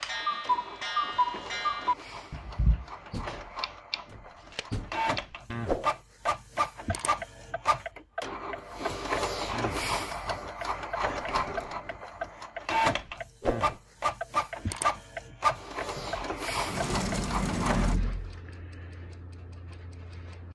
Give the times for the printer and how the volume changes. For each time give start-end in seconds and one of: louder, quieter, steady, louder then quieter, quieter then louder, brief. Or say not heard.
0.0-17.9 louder.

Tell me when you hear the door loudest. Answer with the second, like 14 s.
18 s.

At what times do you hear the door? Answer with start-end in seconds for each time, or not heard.
3.1-5.0, 11.0-11.8, 15.9-18.4.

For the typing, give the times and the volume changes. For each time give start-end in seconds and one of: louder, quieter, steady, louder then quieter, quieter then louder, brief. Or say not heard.
not heard.